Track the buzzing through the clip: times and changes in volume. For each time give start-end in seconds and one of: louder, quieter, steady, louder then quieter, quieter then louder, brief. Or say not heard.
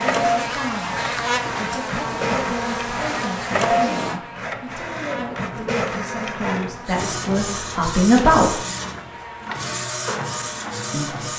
0.0-11.3 quieter.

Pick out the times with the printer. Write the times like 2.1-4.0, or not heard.
0.0-11.3.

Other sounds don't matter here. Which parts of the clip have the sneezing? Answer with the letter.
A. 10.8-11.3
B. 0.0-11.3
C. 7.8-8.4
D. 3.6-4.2
D.